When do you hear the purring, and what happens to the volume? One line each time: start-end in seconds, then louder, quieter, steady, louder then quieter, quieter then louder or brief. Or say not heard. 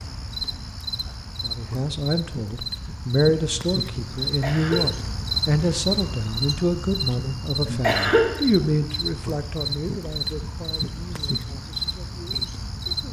not heard.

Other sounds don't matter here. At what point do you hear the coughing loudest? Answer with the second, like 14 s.
8 s.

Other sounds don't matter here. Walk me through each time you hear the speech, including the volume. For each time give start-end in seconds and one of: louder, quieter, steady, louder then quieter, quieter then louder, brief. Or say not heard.
1.4-13.0 quieter.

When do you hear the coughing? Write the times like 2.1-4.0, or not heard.
4.2-5.0, 7.7-8.3.